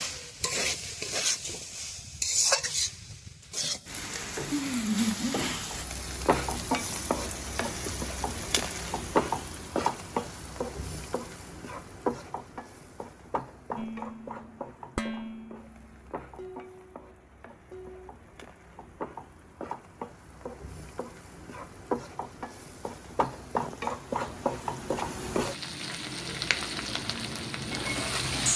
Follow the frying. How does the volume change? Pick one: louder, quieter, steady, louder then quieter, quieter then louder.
quieter then louder.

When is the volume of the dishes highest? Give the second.
15 s.